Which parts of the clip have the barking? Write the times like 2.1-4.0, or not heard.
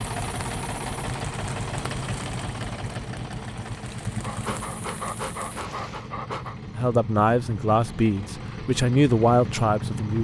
4.2-6.6.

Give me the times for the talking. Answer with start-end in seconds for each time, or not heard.
6.8-10.1.